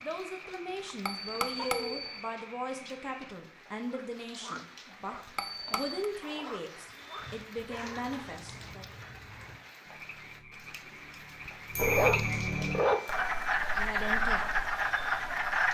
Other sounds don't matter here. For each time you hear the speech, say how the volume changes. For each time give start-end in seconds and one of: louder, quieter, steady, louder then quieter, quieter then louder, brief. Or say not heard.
0.0-8.8 steady
13.8-14.6 brief.